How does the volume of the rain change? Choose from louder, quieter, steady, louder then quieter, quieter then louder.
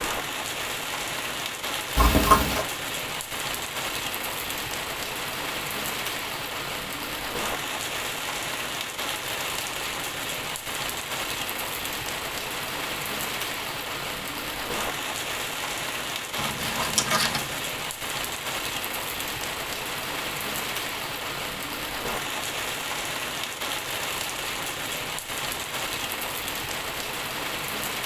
steady.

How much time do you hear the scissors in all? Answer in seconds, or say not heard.
2 s.